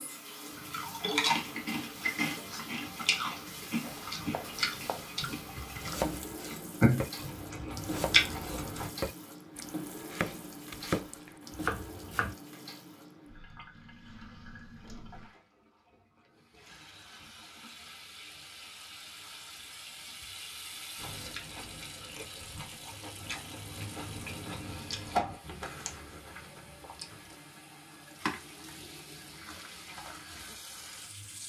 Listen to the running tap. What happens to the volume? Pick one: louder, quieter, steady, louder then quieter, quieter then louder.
quieter then louder.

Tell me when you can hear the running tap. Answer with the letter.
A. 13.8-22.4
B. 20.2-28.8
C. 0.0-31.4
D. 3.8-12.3
C.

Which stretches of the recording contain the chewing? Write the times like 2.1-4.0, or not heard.
0.6-8.9, 20.9-29.4.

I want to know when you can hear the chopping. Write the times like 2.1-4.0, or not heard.
3.8-12.3.